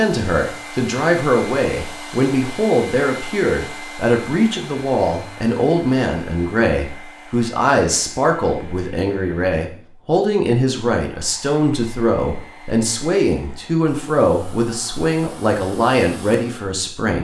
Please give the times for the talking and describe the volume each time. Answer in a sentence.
You can hear the talking from 0.0 to 17.2 s, at a steady volume.